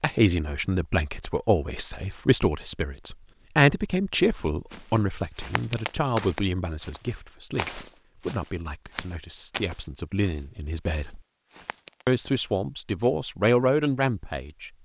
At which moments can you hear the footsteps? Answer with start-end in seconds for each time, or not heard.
4.7-12.1.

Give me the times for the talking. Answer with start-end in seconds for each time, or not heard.
0.0-11.2, 12.1-14.7.